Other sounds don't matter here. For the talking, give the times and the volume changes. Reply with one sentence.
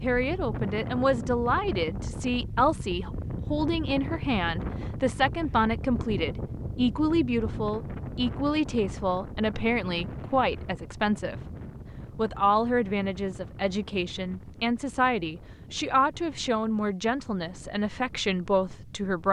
You can hear the talking from 0.0 to 11.3 s, at a steady volume; and from 12.2 to 19.2 s, at a steady volume.